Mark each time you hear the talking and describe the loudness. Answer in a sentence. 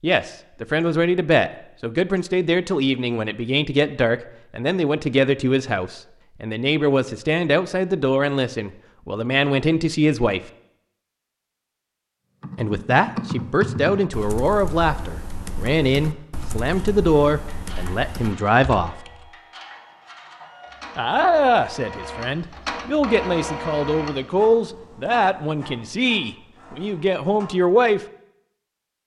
You can hear the talking from 0.0 to 10.4 s, at a steady volume; from 12.6 to 19.0 s, at a steady volume; and from 20.9 to 28.0 s, at a steady volume.